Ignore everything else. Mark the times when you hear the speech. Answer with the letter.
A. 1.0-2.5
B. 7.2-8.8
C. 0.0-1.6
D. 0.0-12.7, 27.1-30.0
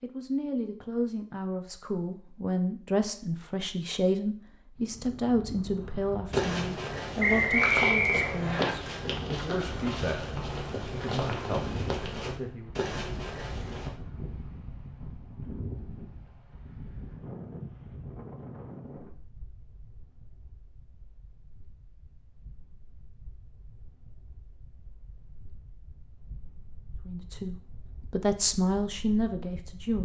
D.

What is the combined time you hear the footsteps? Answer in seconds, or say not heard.
8 s.